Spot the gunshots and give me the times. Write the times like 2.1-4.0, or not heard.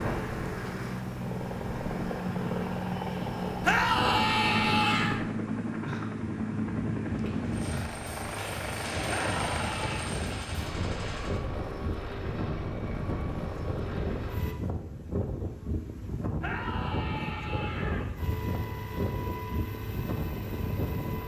8.3-11.4.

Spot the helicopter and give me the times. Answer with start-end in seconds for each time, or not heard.
0.0-14.6, 18.1-21.2.